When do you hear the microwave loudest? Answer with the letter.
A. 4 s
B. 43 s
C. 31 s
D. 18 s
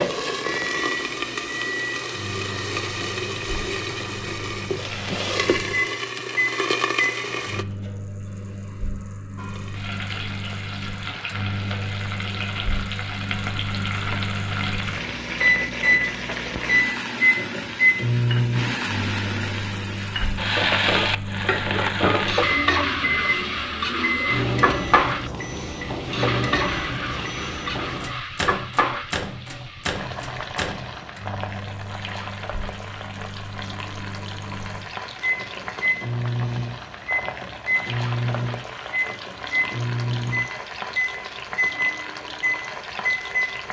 D.